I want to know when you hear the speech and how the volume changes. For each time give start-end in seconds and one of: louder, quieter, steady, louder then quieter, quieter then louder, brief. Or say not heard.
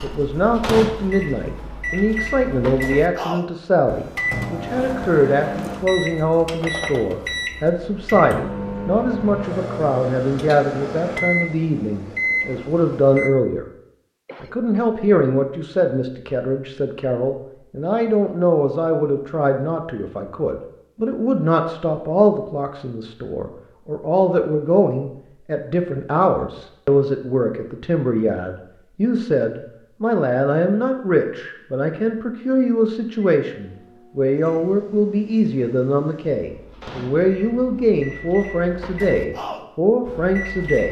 0.0-13.7 steady
14.4-40.8 steady.